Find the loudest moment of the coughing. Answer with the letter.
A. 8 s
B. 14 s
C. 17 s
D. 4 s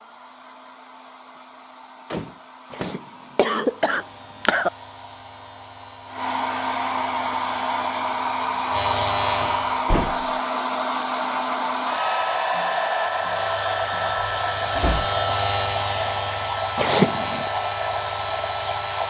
C.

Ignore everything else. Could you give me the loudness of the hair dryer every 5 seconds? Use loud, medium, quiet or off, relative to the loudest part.
quiet, loud, loud, loud.